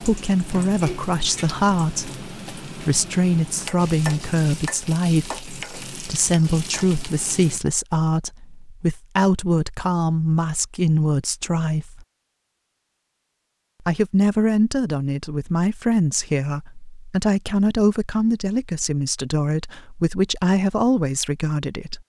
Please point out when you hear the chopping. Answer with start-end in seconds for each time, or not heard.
not heard.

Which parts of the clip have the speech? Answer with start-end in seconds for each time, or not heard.
0.0-12.1, 13.8-22.0.